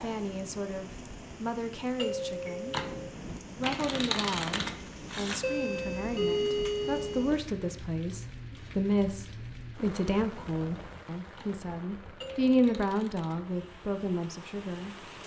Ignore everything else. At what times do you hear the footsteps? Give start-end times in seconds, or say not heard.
not heard.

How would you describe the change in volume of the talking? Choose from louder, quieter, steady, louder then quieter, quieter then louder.
louder.